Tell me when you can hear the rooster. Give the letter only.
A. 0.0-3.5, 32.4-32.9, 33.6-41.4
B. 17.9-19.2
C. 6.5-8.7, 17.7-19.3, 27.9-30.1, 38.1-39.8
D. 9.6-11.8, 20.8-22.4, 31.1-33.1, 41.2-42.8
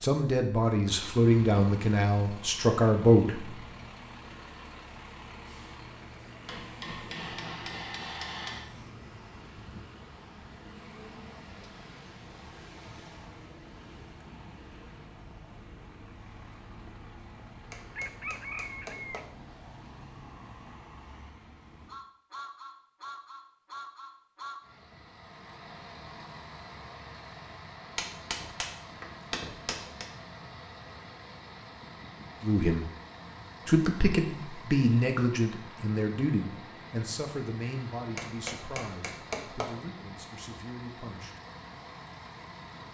B.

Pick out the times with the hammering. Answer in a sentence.
The hammering can be heard from 6.5 to 8.7 s, from 17.7 to 19.3 s, from 27.9 to 30.1 s and from 38.1 to 39.8 s.